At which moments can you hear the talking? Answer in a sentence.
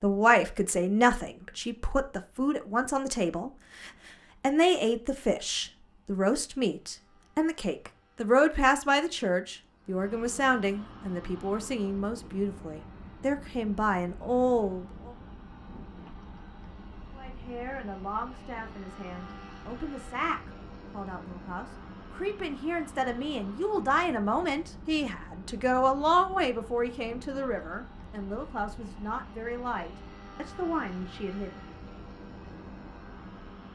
The talking can be heard from 0.0 to 15.1 s and from 17.1 to 31.6 s.